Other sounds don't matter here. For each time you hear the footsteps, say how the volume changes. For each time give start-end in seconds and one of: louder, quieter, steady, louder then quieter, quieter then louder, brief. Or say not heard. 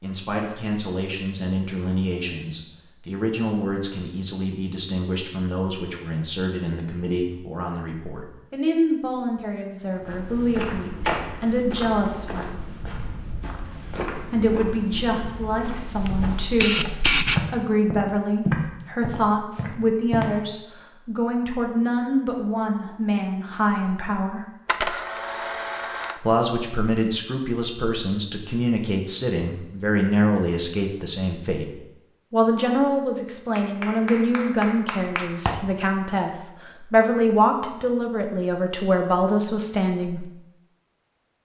9.9-20.2 quieter then louder.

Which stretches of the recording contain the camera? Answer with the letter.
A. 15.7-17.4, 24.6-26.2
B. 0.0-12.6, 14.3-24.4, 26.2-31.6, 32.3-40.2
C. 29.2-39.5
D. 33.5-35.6
A.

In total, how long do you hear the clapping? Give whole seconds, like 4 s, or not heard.
2 s.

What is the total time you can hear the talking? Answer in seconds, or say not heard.
36 s.